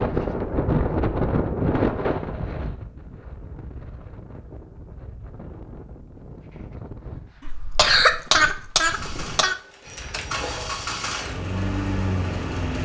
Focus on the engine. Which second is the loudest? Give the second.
12 s.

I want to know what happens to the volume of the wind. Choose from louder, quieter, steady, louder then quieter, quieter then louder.
quieter.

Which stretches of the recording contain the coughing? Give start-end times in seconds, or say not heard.
7.5-9.6.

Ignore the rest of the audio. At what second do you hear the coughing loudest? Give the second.
8 s.